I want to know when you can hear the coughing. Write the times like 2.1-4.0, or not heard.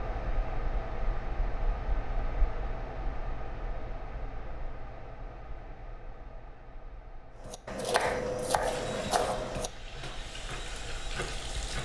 not heard.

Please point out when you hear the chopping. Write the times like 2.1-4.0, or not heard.
7.5-11.8.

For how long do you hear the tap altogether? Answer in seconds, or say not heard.
3 s.